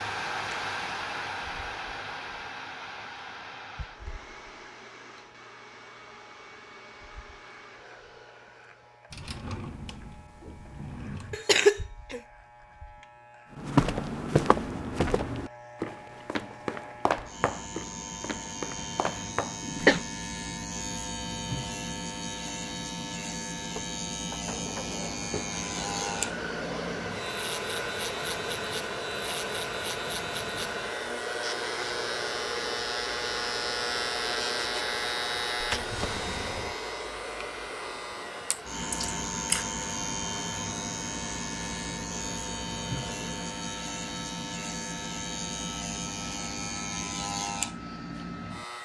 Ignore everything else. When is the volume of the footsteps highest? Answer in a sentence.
The loudest moment of the footsteps is at 14 seconds.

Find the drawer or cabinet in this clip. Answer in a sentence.
The drawer or cabinet can be heard from 9.1 to 11.4 s, from 23.8 to 25.5 s and from 35.6 to 36.8 s.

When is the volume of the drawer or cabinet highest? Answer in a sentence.
The loudest moment of the drawer or cabinet is at 36 seconds.